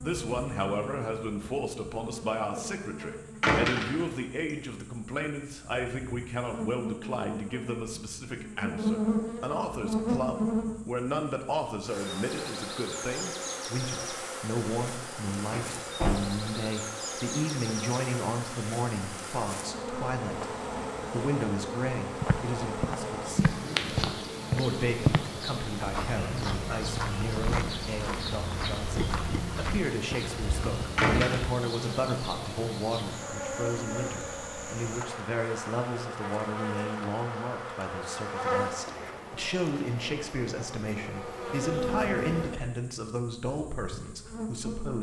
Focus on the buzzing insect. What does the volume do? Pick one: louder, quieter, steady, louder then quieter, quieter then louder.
steady.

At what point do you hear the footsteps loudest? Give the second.
25 s.